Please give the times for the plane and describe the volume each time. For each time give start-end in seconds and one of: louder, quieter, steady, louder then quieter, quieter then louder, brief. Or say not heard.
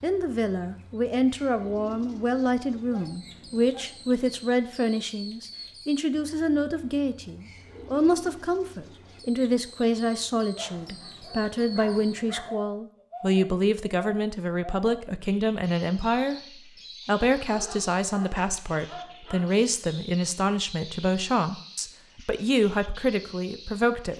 not heard.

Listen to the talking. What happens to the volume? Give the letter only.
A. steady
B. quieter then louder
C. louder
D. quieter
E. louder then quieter
A.